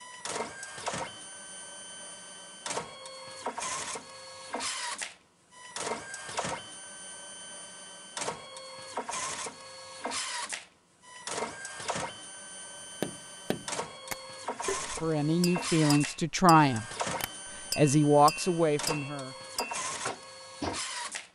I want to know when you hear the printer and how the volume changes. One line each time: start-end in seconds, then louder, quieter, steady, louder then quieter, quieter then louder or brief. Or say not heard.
0.0-21.3 steady.